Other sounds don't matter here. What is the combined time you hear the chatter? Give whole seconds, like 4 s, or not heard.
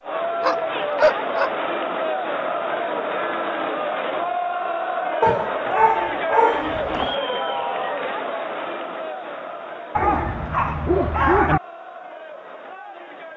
13 s.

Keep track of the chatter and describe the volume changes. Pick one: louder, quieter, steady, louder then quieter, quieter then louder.
quieter.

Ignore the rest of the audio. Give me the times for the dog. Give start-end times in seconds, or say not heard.
0.4-1.5, 5.2-7.1, 9.9-11.6.